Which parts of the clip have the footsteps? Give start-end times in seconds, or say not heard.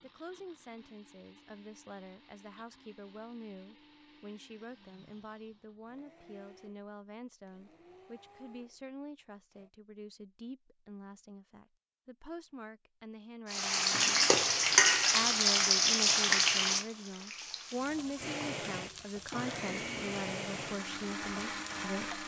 not heard.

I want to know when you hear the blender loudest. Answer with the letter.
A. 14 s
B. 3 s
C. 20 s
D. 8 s
C.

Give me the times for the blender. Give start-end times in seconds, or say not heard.
0.0-9.7, 18.1-22.2.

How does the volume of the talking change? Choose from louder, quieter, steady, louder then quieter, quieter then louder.
louder.